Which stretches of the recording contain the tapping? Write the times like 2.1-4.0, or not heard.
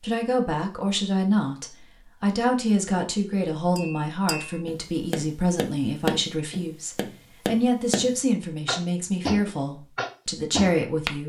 3.8-11.2.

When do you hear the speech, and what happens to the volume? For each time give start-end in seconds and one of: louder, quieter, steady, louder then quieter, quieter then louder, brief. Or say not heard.
0.0-11.2 steady.